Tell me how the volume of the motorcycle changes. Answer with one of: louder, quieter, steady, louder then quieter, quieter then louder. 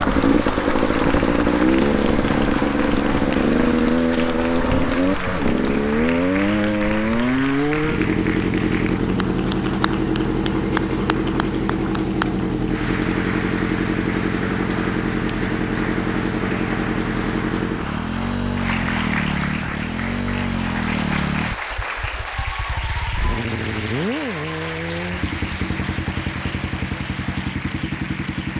quieter.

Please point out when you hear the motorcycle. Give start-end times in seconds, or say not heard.
0.0-28.5.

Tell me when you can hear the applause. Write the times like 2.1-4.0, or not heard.
0.0-28.5.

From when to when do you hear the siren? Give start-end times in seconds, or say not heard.
not heard.